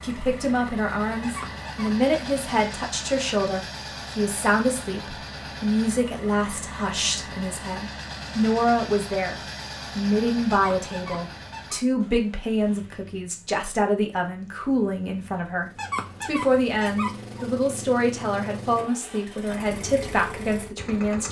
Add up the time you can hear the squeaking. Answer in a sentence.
You can hear the squeaking for 4 seconds altogether.